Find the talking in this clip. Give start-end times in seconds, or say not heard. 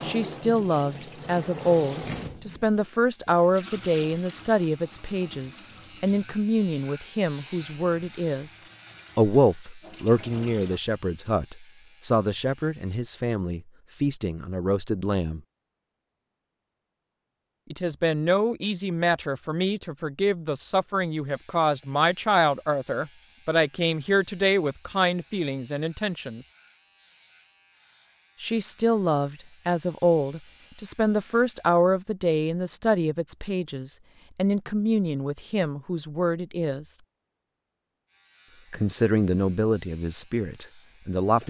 0.0-15.4, 17.7-26.4, 28.4-37.0, 38.7-41.4.